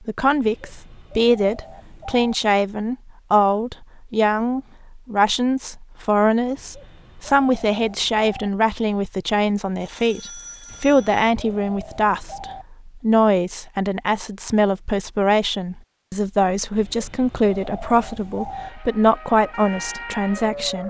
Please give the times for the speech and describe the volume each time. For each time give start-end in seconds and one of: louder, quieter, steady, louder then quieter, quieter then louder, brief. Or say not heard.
0.1-20.8 steady.